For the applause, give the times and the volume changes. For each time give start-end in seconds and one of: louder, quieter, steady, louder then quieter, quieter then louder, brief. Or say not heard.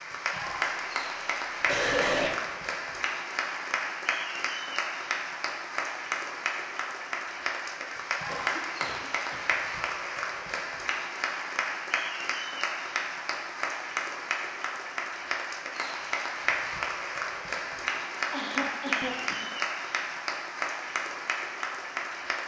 0.0-22.4 steady.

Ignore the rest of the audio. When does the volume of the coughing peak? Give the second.
2 s.